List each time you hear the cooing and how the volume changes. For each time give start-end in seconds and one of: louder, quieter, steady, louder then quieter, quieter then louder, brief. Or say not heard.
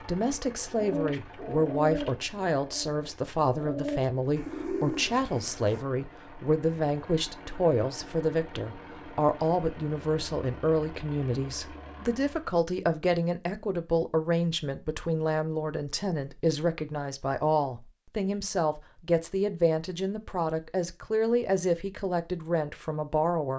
0.8-5.8 quieter then louder.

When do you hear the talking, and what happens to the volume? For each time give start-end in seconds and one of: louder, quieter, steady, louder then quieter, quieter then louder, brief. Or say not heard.
0.0-23.5 steady.